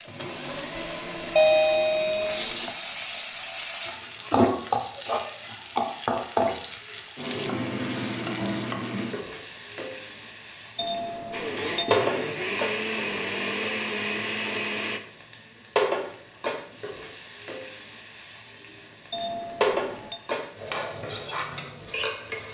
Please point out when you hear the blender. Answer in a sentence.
You can hear the blender from 0.0 to 2.7 s and from 11.3 to 15.0 s.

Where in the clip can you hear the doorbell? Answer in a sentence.
The doorbell can be heard from 1.4 to 2.5 s, from 10.8 to 12.1 s and from 19.1 to 20.2 s.